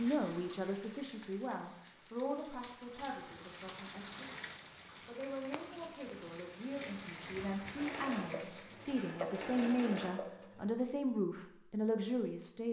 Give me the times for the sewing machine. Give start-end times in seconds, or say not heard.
7.8-10.7.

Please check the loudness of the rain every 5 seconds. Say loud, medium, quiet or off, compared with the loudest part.
medium, loud, off.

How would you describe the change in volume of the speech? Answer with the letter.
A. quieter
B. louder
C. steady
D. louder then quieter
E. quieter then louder
E.